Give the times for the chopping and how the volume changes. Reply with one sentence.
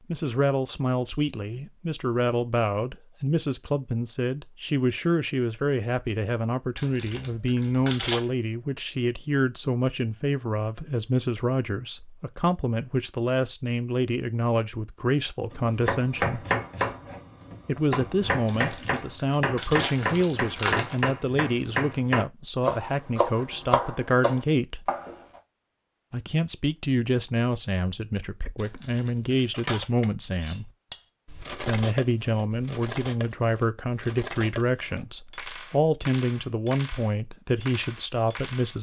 The chopping can be heard from 15.5 to 25.4 s, at a steady volume.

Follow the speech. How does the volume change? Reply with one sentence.
The volume of the speech stays about the same.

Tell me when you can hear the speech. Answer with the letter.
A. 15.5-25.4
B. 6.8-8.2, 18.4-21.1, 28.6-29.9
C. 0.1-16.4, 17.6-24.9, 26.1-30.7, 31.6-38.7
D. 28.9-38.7
C.